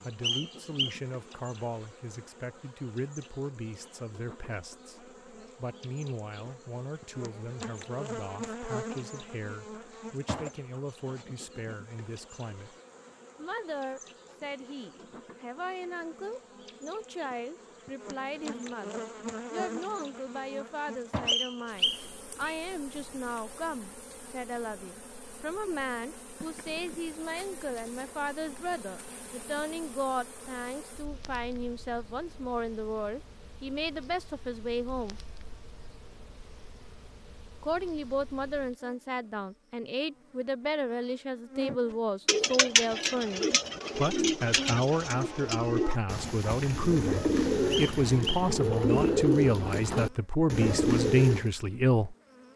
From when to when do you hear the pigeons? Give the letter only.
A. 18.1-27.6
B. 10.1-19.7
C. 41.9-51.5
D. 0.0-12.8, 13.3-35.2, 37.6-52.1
C.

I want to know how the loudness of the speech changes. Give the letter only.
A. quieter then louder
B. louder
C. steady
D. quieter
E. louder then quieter
B.